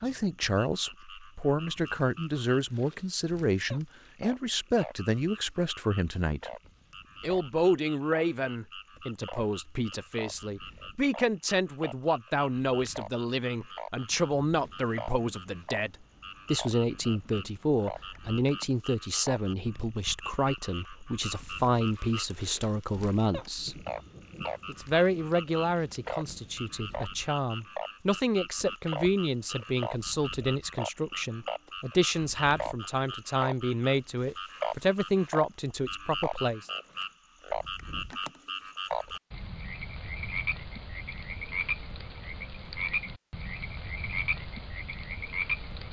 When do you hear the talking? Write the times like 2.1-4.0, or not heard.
0.0-6.5, 7.2-23.8, 24.6-36.7.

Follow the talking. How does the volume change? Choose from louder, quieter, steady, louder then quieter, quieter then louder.
steady.